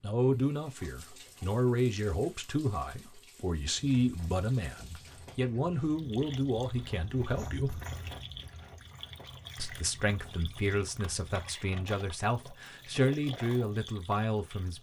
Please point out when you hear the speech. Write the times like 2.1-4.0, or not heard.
0.0-7.8, 9.6-14.7.